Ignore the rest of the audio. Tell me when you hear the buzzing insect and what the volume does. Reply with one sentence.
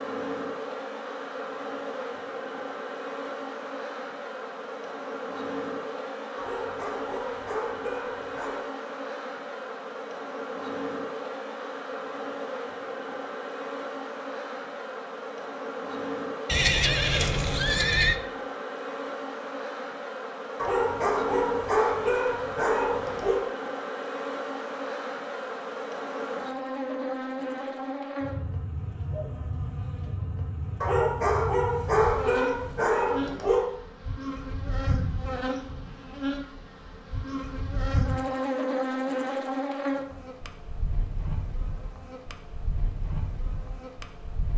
The buzzing insect can be heard from 0.0 to 44.5 s, at a steady volume.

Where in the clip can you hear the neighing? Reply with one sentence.
The neighing can be heard from 16.4 to 18.2 s.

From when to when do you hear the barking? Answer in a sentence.
The barking can be heard from 6.3 to 8.7 s, from 20.6 to 23.4 s and from 30.8 to 33.6 s.